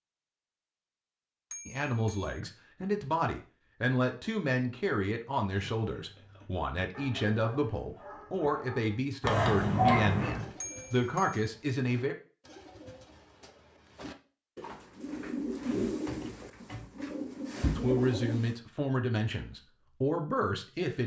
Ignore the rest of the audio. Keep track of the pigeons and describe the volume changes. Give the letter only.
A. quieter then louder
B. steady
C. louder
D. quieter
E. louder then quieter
C.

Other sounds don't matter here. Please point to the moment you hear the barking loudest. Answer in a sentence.
The volume of the barking peaks at 10 seconds.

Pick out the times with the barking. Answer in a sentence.
You can hear the barking from 5.5 to 10.5 s.